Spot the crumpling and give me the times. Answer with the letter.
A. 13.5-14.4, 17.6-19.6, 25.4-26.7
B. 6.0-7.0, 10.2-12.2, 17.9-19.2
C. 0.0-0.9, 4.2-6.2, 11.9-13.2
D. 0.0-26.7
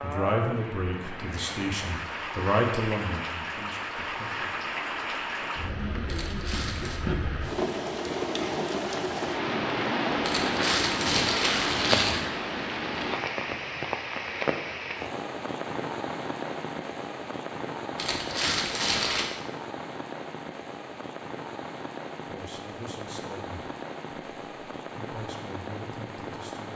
B.